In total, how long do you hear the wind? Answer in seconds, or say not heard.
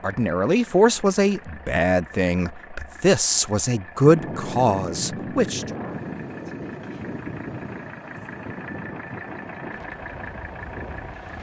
7 s.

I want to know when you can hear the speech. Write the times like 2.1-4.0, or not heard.
0.0-5.7.